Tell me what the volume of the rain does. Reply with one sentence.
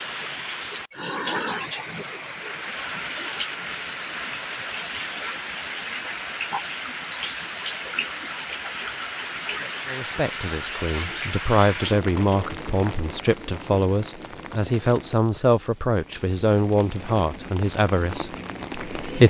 The volume of the rain goes down.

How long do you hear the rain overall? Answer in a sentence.
The rain can be heard for 19 seconds in total.